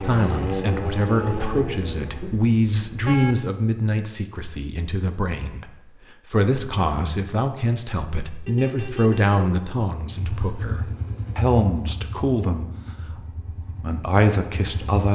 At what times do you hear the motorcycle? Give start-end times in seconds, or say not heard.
0.0-2.3, 10.1-15.1.